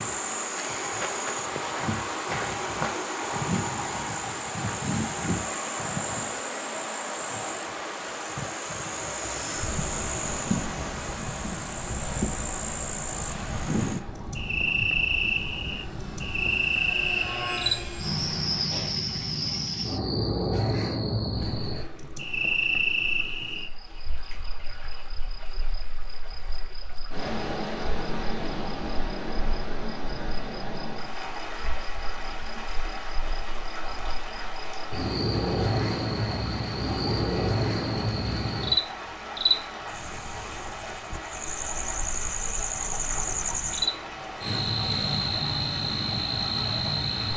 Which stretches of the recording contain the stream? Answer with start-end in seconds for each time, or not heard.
21.4-47.3.